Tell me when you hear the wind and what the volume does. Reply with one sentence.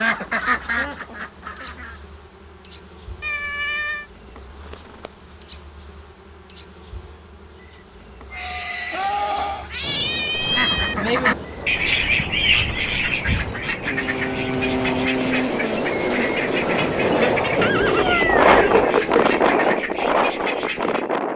The wind can be heard from 9.8 to 21.3 s, getting louder.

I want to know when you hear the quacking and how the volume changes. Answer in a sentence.
You can hear the quacking briefly from 0.0 to 2.0 s; and from 10.5 to 21.1 s, getting quieter.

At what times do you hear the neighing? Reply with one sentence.
You can hear the neighing from 4.2 to 5.1 s, from 8.3 to 9.7 s and from 17.6 to 19.2 s.